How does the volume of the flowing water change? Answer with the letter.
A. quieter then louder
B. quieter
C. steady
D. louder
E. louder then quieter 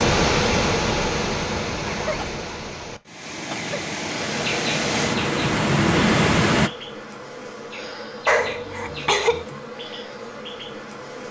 A.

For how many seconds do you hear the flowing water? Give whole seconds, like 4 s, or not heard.
7 s.